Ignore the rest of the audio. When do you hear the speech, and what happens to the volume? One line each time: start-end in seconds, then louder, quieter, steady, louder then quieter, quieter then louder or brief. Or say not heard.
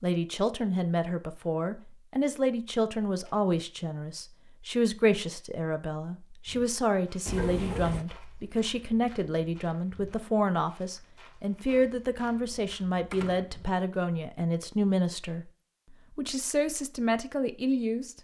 0.0-15.5 steady
16.1-18.1 brief.